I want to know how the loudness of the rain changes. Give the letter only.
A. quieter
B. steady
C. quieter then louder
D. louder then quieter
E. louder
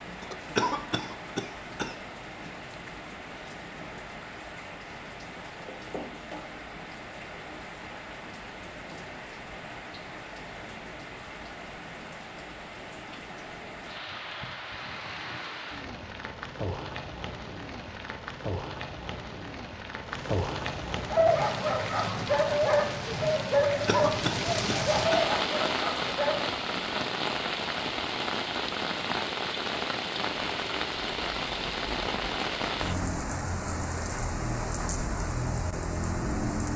E.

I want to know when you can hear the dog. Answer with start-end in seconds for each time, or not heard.
21.1-26.4.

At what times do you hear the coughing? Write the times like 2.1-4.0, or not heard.
0.2-2.0, 23.6-25.4.